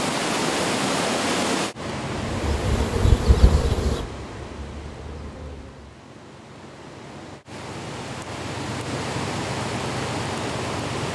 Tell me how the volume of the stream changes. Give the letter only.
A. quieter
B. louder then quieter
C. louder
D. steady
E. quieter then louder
E.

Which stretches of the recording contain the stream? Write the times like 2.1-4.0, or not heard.
0.0-11.1.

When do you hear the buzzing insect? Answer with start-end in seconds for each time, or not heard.
2.2-5.9.